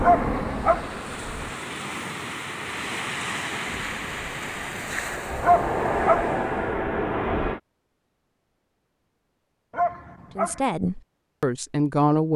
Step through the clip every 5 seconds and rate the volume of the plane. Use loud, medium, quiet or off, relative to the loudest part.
medium, loud, off.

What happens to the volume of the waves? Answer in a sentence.
The volume of the waves goes up, then down.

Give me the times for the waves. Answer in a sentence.
The waves can be heard from 0.0 to 6.8 s.